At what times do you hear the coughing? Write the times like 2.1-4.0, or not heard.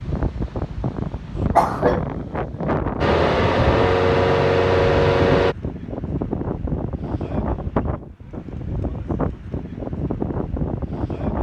1.6-2.0.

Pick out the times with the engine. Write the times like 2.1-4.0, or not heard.
3.0-5.5.